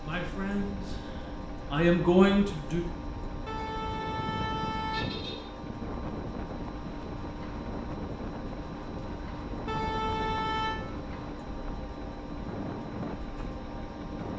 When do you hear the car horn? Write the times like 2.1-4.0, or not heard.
3.5-5.4, 9.7-10.8.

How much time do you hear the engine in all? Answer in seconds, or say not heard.
14 s.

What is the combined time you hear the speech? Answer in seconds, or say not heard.
3 s.